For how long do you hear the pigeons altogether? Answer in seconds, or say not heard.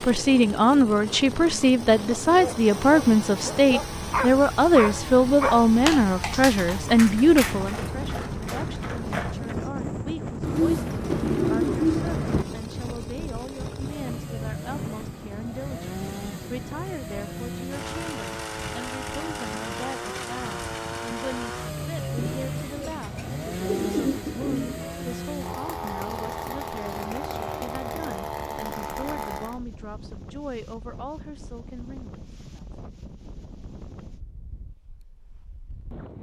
5 s.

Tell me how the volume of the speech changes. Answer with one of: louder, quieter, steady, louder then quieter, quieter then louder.
quieter.